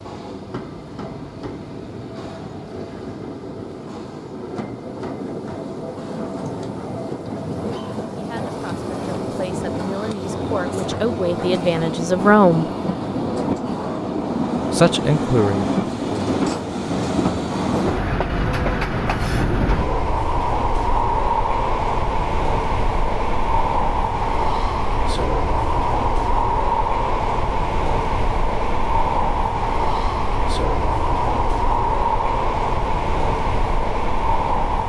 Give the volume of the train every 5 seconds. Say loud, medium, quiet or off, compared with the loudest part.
medium, medium, loud, loud, loud, loud, loud.